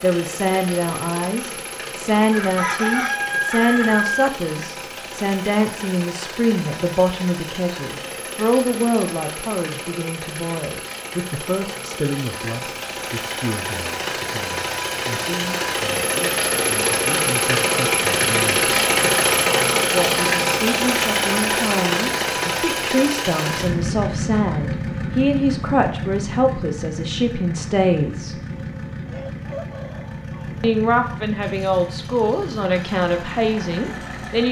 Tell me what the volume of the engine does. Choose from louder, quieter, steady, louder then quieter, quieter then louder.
louder then quieter.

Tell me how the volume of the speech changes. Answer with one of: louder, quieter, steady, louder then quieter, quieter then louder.
quieter then louder.